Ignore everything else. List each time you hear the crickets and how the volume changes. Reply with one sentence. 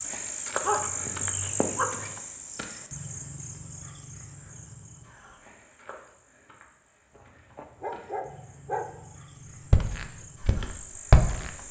You can hear the crickets from 0.0 to 11.6 s, getting quieter then louder.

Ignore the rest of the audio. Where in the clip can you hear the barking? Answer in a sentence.
The barking can be heard from 0.6 to 2.1 s and from 7.2 to 8.8 s.